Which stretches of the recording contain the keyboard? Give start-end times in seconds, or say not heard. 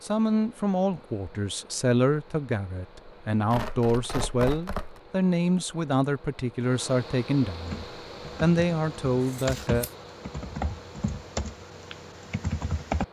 7.7-13.0.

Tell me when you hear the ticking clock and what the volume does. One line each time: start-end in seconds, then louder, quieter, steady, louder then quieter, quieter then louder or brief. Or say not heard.
not heard.